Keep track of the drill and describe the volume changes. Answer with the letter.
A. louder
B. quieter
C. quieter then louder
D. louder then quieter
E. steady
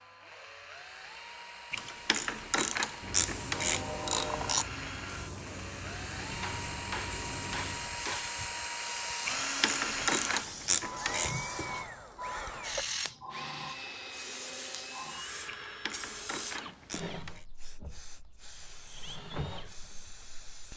D.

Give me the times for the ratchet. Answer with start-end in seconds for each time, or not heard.
1.7-4.7, 9.2-11.3, 15.4-17.4.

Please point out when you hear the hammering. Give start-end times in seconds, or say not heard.
6.3-8.3.